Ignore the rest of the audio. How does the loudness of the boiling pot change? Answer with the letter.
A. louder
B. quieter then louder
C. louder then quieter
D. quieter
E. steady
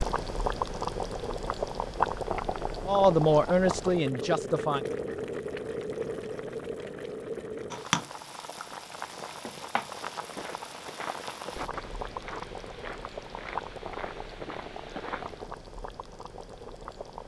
D.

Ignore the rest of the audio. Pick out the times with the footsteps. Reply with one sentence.
You can hear the footsteps from 10.2 to 15.4 s.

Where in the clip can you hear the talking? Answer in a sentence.
You can hear the talking from 2.8 to 4.8 s.